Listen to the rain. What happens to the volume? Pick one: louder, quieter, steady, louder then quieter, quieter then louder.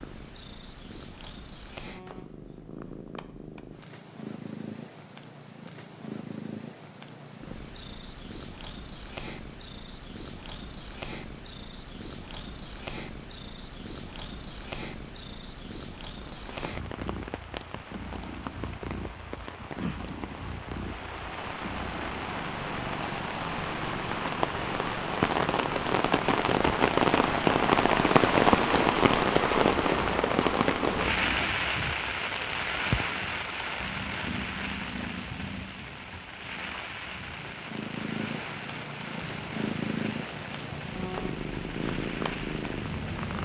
louder then quieter.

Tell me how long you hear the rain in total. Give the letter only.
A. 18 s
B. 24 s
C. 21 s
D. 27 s
D.